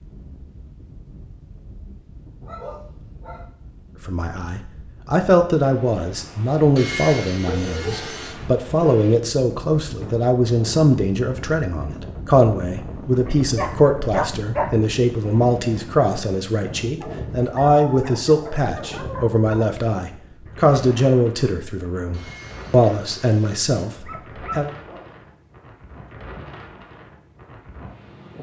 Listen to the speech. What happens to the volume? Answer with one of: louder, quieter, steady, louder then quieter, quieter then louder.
steady.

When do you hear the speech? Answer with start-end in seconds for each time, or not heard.
4.0-24.7.